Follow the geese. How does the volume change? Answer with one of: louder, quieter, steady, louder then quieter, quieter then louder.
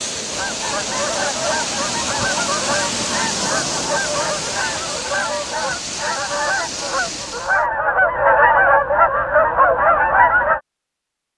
louder.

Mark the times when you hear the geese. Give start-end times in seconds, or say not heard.
0.2-10.6.